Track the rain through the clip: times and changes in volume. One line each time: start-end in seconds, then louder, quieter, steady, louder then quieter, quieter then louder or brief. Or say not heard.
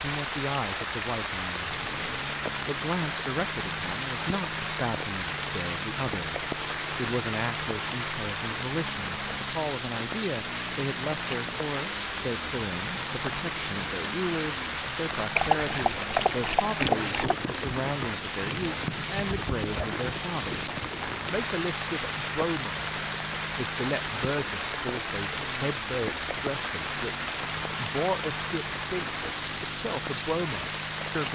0.0-31.3 steady.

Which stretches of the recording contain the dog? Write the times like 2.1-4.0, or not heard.
15.3-17.4.